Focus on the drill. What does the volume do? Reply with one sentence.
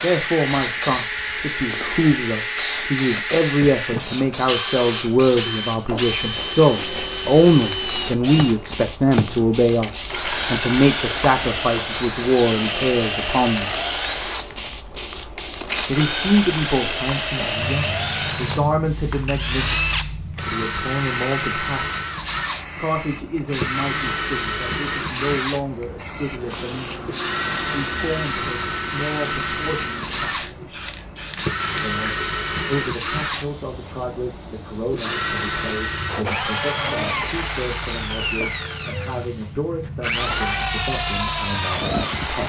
The volume of the drill stays about the same.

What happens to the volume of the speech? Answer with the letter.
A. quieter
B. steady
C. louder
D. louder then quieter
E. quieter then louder
A.